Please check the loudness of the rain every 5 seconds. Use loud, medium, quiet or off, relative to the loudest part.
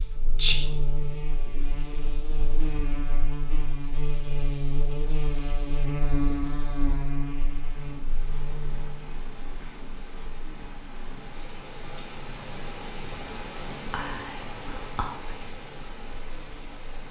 off, medium, loud, loud.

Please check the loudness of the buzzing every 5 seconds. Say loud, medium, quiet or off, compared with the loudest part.
loud, loud, quiet, quiet.